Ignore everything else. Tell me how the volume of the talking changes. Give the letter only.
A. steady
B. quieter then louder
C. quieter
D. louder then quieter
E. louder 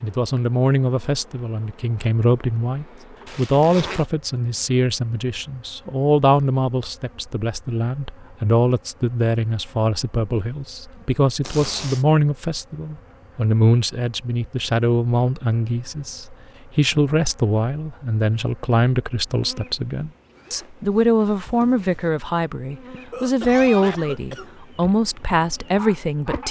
A.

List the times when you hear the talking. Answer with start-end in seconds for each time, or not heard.
0.0-26.4.